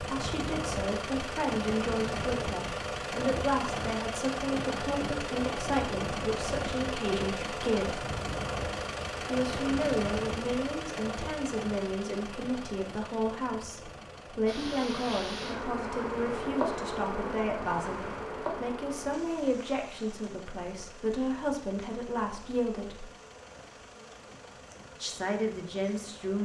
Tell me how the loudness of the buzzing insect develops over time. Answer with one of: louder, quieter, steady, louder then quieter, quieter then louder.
quieter.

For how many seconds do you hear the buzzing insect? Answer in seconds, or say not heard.
12 s.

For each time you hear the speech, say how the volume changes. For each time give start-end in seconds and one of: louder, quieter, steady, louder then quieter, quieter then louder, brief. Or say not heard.
0.0-8.1 steady
9.2-23.1 steady
25.0-26.3 brief.